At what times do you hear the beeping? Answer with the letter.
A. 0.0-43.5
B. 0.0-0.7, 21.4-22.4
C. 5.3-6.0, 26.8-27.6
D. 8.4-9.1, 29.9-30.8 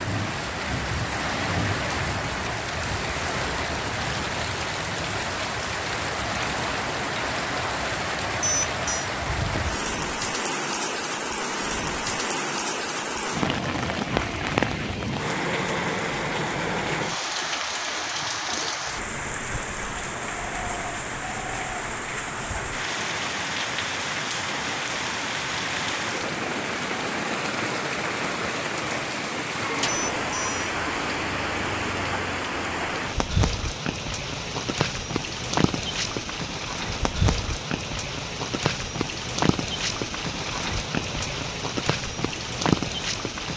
D.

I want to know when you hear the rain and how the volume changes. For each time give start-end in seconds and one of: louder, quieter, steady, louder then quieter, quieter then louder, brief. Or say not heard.
0.0-43.5 steady.